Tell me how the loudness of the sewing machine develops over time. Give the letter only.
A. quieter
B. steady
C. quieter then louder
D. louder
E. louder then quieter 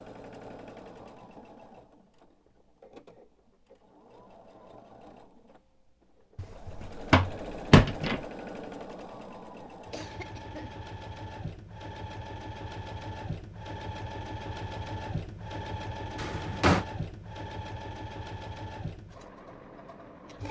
D.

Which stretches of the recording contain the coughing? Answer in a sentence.
The coughing can be heard from 9.9 to 10.8 s.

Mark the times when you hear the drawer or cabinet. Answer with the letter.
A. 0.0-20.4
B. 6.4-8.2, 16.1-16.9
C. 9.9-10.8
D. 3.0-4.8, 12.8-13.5
B.